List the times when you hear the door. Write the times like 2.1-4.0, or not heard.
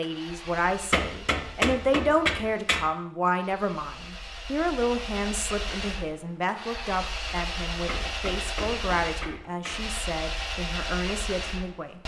not heard.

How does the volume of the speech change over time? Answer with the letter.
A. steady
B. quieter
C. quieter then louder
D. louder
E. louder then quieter
B.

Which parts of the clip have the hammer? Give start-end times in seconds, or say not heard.
0.9-2.9, 7.8-9.8.